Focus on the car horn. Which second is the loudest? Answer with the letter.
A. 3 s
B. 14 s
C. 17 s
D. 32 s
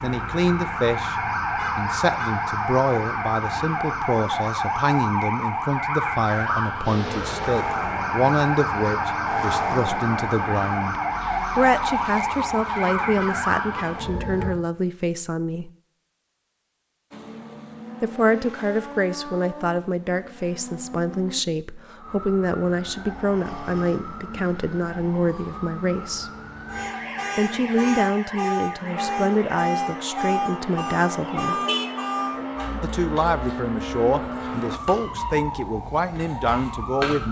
D.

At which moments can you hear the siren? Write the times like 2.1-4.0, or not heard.
0.0-14.6, 21.9-37.2.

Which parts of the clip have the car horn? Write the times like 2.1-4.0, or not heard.
1.6-2.4, 13.2-14.0, 31.6-32.5.